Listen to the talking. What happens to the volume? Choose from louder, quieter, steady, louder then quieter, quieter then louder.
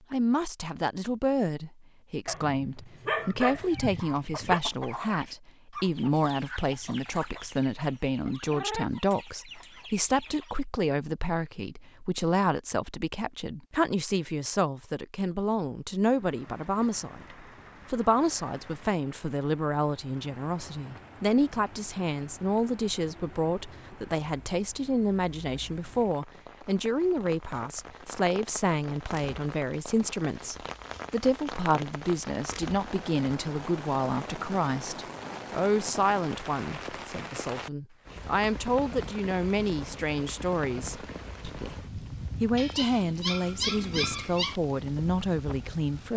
steady.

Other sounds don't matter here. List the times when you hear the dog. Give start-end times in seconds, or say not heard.
2.2-4.6, 42.5-44.5.